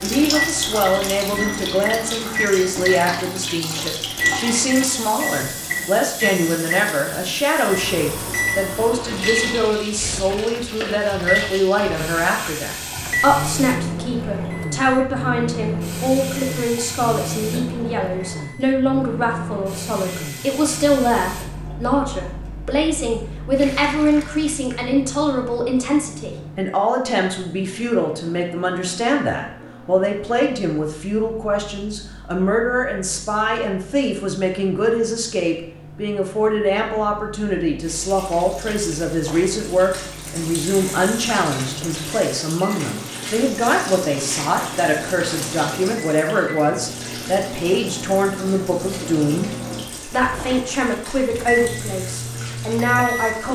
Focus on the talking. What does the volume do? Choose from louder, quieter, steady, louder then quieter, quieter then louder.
steady.